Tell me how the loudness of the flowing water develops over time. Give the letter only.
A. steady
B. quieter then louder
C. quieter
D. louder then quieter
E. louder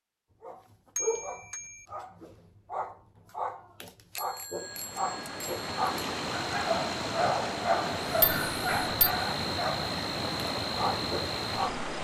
A.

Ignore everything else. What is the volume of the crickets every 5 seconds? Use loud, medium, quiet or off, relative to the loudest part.
off, loud, loud.